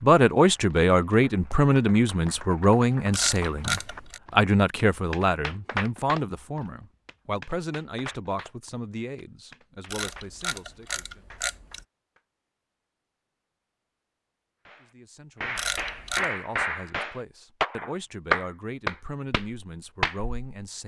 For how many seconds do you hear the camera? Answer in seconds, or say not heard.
4 s.